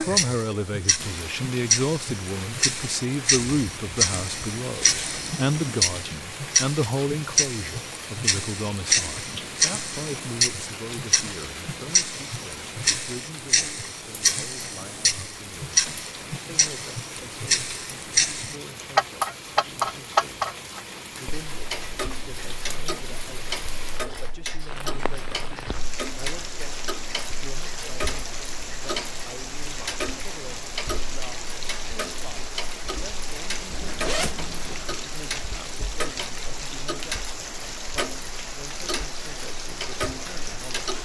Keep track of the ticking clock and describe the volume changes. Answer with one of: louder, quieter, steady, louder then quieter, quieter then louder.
quieter.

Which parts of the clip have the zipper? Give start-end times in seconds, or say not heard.
33.7-34.9.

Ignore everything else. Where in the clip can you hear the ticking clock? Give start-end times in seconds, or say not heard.
0.0-41.0.